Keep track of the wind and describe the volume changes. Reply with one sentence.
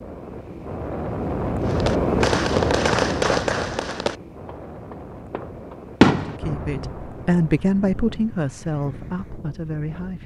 The loudness of the wind goes down.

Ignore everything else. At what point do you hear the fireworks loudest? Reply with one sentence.
The loudest moment of the fireworks is at 6 seconds.